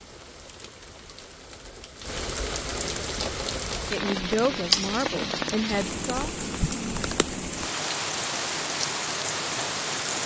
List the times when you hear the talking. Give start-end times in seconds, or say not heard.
3.9-6.3.